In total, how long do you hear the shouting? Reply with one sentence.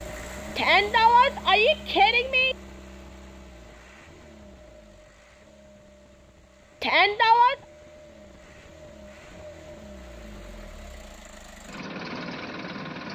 The shouting can be heard for 3 seconds in total.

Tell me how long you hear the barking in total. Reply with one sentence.
You can't hear the barking here.